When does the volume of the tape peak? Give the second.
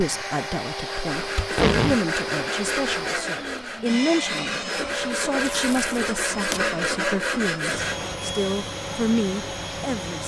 2 s.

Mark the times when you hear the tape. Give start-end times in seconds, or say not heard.
1.4-2.0, 5.4-6.6.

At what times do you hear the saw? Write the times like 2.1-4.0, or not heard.
0.8-8.1.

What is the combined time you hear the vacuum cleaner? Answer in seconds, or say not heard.
10 s.